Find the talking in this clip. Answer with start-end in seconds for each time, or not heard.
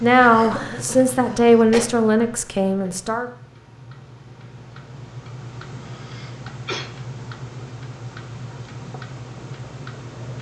0.0-3.2.